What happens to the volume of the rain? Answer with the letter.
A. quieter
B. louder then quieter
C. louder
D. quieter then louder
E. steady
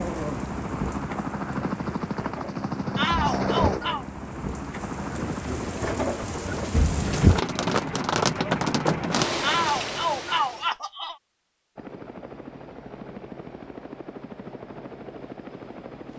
C.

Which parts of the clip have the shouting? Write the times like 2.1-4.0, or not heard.
3.0-4.0, 9.4-11.2.